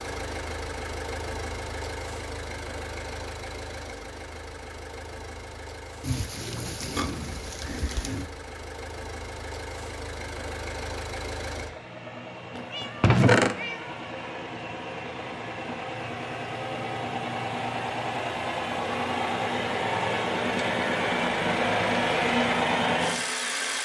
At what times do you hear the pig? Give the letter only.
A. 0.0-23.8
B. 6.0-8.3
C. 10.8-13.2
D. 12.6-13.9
B.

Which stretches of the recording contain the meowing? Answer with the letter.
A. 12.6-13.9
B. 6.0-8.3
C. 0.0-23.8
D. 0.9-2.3
A.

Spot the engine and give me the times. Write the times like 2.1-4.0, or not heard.
0.0-23.8.